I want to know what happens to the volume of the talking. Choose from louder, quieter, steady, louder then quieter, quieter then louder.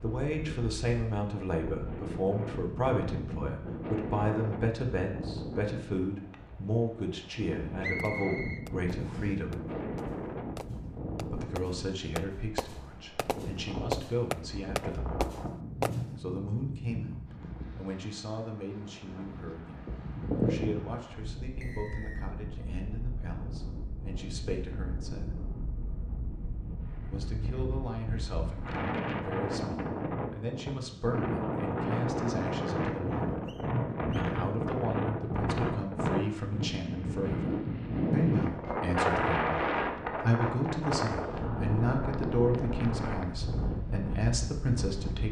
quieter then louder.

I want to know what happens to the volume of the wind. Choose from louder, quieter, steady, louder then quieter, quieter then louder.
louder.